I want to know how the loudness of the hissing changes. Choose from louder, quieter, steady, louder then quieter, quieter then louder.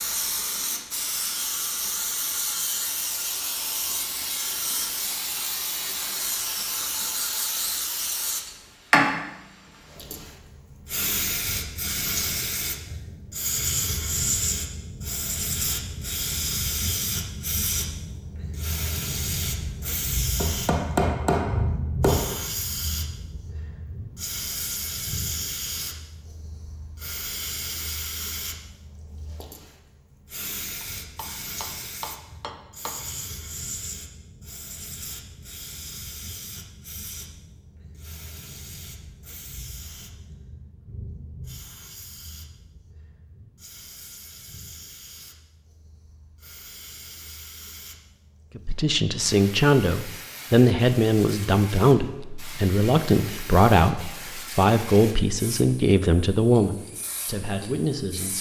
quieter.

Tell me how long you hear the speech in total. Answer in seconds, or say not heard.
10 s.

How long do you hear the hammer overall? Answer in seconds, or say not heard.
4 s.